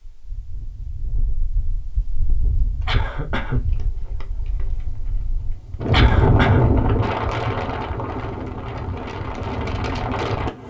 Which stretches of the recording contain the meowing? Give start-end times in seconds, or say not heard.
not heard.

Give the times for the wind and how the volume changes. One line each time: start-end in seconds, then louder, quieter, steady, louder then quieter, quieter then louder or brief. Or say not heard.
0.0-10.6 louder then quieter.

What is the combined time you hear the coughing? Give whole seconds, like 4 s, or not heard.
2 s.